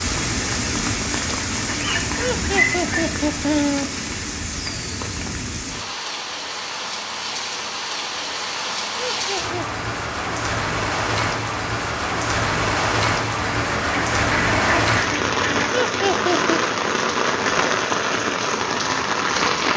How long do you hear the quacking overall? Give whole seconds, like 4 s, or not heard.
4 s.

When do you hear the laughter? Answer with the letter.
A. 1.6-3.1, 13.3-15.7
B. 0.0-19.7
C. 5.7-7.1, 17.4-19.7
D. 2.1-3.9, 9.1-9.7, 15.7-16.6
D.